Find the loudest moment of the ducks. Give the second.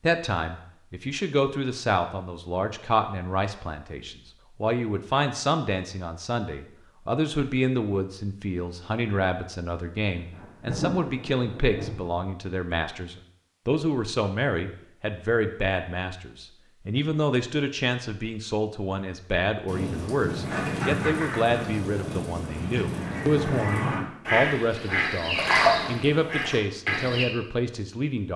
26 s.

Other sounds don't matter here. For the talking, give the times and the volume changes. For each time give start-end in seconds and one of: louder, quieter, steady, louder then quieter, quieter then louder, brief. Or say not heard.
0.0-28.3 steady.